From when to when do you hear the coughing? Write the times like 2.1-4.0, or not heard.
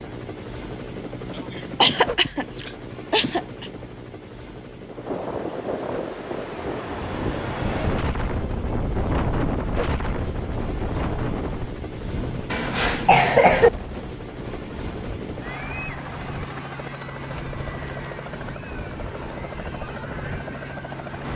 1.4-3.7, 12.5-13.7.